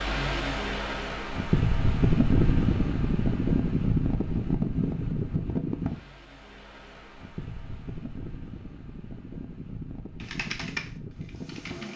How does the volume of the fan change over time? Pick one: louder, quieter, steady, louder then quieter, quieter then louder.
quieter.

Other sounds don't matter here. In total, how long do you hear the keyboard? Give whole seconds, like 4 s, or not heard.
2 s.